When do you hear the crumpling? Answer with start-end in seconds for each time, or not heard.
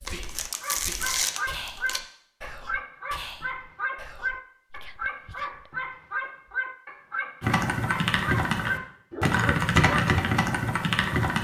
0.1-2.0.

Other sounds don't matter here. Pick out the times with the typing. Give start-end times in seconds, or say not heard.
7.4-11.3.